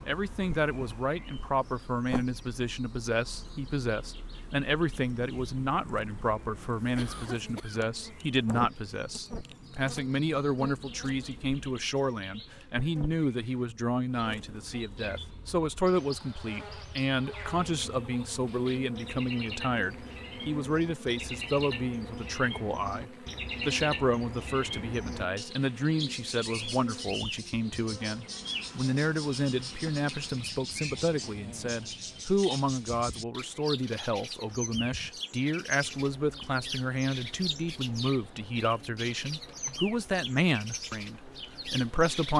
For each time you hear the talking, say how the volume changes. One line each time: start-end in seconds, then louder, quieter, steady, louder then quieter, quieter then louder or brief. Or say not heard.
0.1-42.3 steady.